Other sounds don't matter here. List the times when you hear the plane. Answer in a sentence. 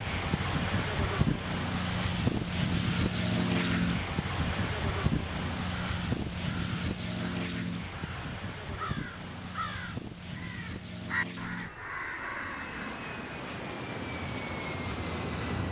You can hear the plane from 0.0 to 15.6 s.